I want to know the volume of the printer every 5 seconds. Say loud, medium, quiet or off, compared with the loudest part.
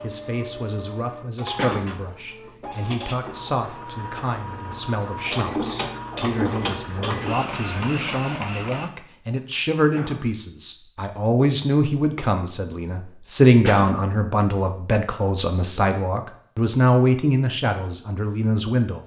medium, loud, off, off.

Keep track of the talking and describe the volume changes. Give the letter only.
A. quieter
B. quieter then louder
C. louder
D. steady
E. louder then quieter
C.